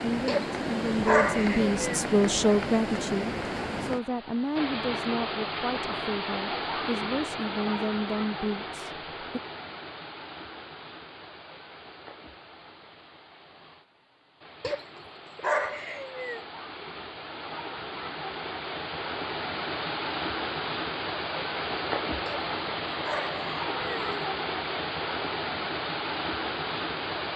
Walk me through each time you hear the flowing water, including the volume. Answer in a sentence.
The flowing water can be heard from 0.0 to 27.3 s, getting quieter then louder.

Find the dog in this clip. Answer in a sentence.
The dog can be heard from 0.2 to 2.0 s, from 14.6 to 16.4 s and from 22.2 to 24.2 s.